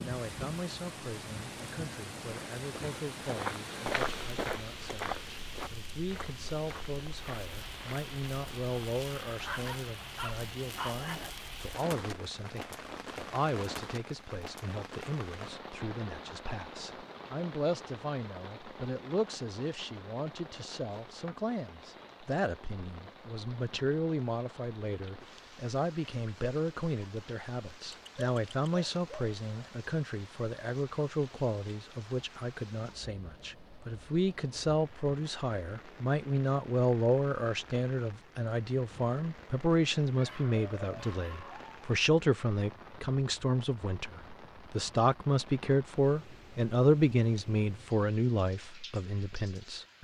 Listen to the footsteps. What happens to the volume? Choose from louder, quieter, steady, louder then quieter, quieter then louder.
quieter.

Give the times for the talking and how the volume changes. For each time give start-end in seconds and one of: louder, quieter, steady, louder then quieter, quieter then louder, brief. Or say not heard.
0.0-49.9 louder.